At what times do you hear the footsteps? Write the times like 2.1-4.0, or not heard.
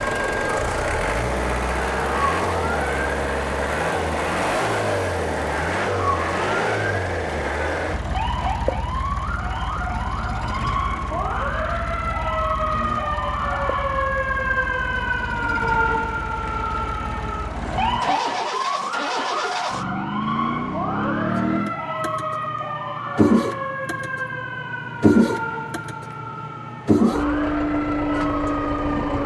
not heard.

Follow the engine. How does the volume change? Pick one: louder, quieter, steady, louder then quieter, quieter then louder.
quieter then louder.